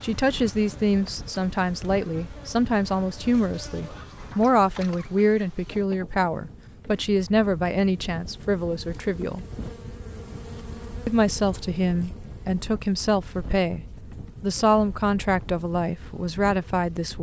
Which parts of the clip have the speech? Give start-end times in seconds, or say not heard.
0.0-9.4, 11.1-17.1.